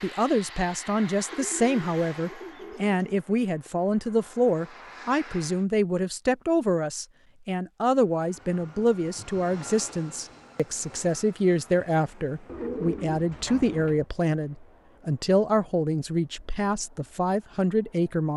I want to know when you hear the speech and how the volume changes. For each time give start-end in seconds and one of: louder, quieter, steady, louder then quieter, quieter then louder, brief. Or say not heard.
0.0-18.3 steady.